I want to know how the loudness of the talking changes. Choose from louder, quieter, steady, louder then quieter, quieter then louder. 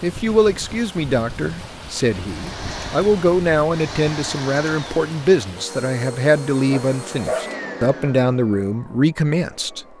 steady.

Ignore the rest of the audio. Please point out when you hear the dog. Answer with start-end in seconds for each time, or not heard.
6.1-7.6.